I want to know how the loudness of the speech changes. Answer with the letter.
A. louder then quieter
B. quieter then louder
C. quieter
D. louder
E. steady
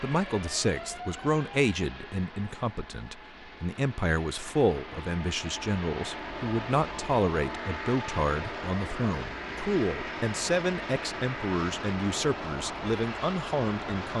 E.